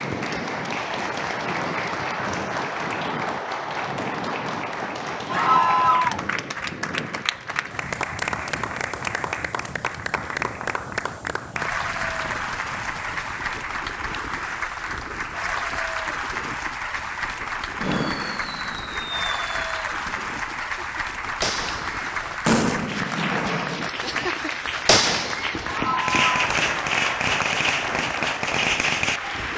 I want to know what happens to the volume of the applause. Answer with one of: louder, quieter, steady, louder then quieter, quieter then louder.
steady.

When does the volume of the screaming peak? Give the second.
6 s.